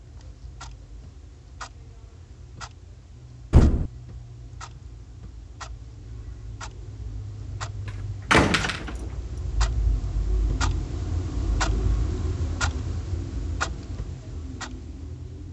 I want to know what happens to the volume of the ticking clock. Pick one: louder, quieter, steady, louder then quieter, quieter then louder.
louder.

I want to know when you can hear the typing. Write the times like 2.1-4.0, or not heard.
not heard.